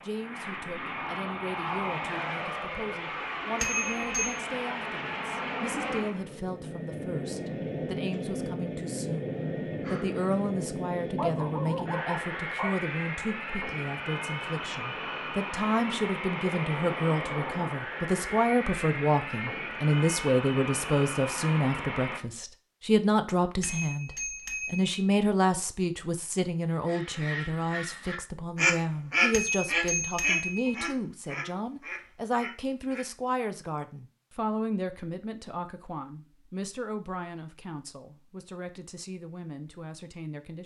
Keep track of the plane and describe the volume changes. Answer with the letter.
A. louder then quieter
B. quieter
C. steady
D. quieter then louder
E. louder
C.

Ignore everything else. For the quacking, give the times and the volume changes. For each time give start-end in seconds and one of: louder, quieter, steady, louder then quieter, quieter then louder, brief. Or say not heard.
26.9-33.0 louder then quieter.